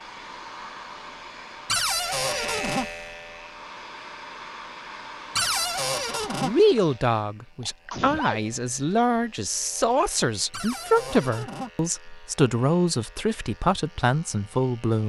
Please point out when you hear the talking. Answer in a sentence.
The talking can be heard from 6.4 to 15.0 s.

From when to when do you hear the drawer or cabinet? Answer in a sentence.
You can hear the drawer or cabinet from 1.6 to 2.9 s, from 5.3 to 6.5 s and from 10.5 to 11.7 s.